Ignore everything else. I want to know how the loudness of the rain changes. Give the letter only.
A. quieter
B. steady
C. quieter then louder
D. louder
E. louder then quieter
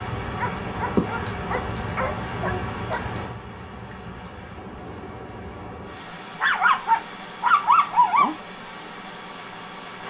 A.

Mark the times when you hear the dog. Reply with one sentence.
You can hear the dog from 0.3 to 3.1 s and from 6.4 to 8.3 s.